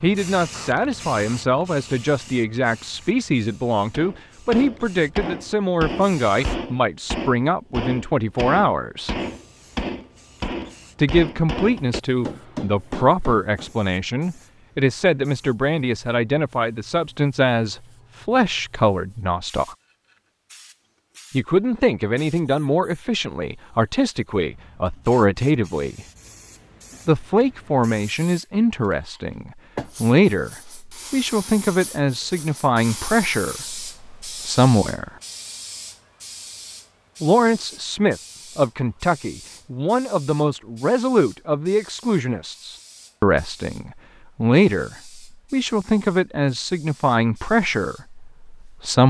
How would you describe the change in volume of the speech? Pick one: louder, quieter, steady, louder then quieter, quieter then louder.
steady.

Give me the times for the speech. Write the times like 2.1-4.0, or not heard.
0.0-9.2, 10.9-19.8, 21.3-26.1, 27.1-35.1, 37.2-49.0.